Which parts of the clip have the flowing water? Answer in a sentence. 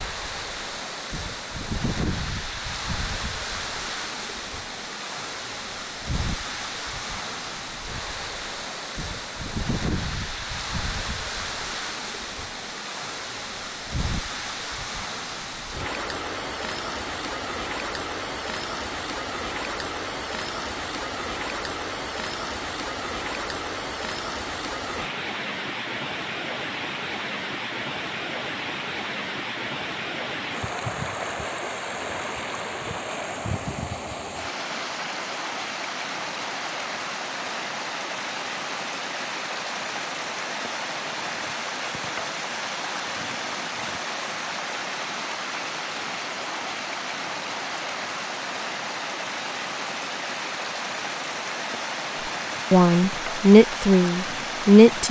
The flowing water can be heard from 0.0 to 55.0 s.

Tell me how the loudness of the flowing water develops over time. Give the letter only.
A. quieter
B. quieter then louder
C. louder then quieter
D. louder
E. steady
E.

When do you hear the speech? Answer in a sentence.
The speech can be heard from 52.7 to 55.0 s.